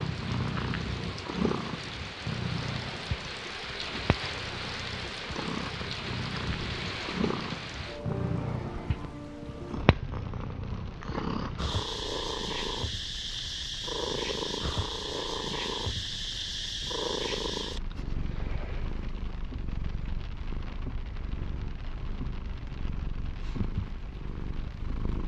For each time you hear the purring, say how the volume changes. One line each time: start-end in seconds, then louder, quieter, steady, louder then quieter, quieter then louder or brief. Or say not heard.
0.0-25.2 quieter.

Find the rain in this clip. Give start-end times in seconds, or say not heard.
0.0-25.2.